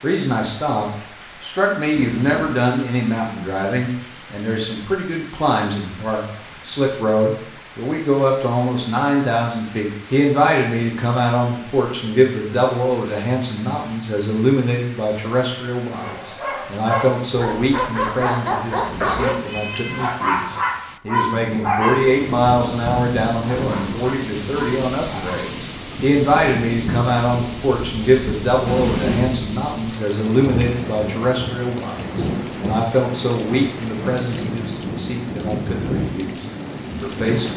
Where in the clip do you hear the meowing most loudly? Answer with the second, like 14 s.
29 s.